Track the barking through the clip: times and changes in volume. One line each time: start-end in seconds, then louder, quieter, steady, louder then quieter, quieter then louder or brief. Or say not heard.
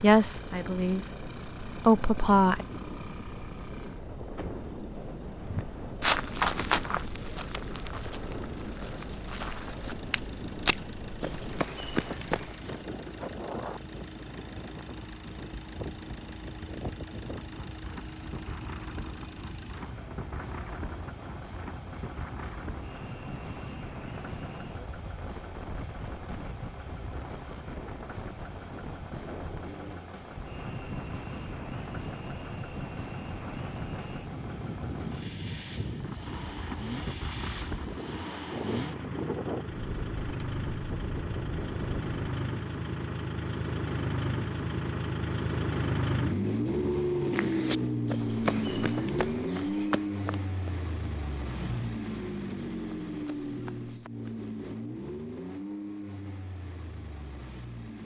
not heard.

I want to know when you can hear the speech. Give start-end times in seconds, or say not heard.
0.0-2.6.